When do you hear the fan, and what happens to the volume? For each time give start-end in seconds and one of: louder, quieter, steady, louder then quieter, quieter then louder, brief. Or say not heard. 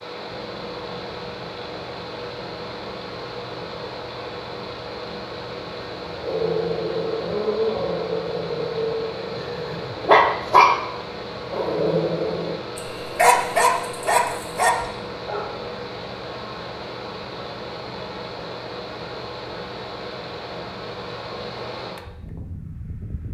0.0-23.2 steady.